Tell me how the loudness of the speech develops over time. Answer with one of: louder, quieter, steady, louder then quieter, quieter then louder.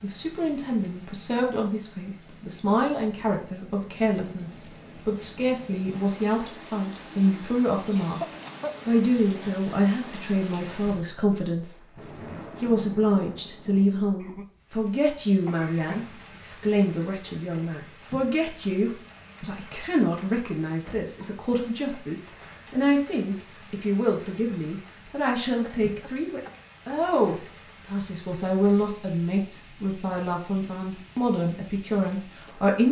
steady.